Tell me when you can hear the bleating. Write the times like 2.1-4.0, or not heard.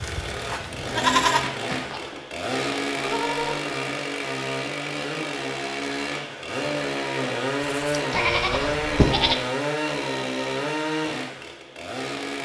0.0-3.6, 7.7-9.3.